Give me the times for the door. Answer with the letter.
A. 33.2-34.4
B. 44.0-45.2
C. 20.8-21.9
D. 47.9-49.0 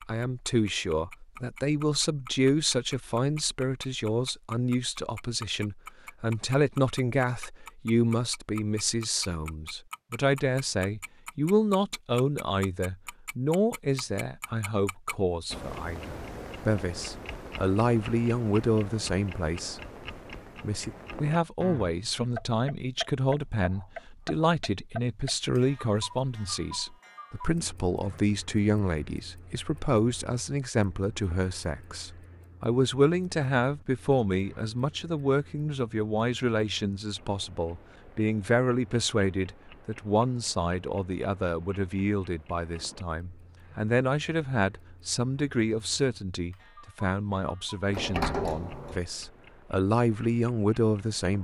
D.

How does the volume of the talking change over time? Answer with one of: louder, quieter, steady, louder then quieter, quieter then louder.
steady.